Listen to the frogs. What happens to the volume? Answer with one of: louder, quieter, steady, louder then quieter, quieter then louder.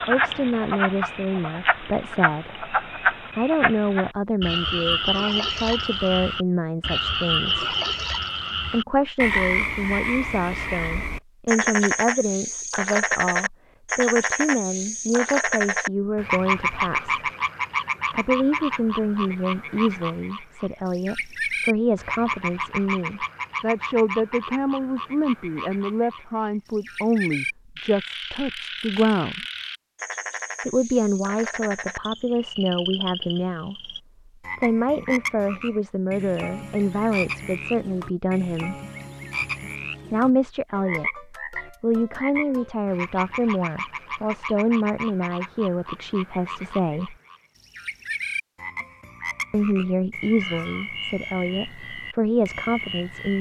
quieter.